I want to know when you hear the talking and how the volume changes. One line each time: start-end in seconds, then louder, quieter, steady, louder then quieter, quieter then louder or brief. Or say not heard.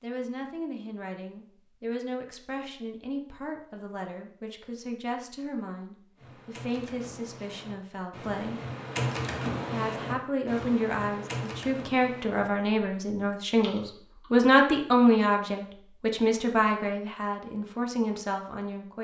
0.0-8.7 steady
9.7-19.0 louder then quieter.